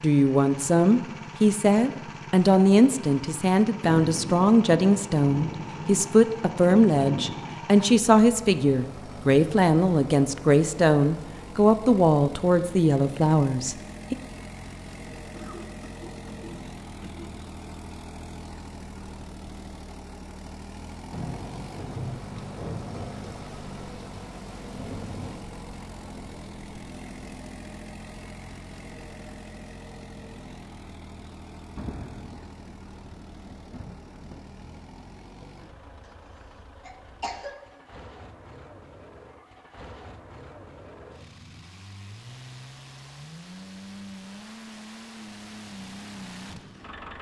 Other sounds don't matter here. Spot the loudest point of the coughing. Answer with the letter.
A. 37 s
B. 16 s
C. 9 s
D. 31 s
A.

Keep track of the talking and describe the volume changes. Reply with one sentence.
The volume of the talking stays about the same.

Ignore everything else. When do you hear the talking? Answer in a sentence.
The talking can be heard from 0.0 to 14.2 s.